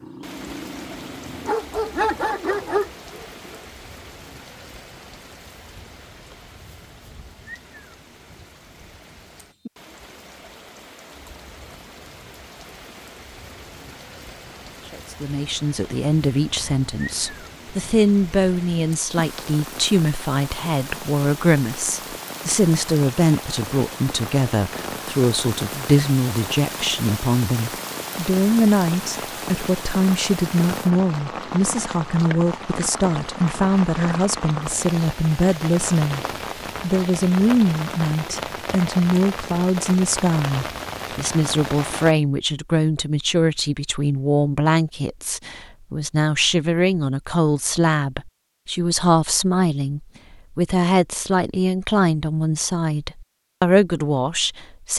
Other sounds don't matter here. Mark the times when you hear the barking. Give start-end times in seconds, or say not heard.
0.0-3.6.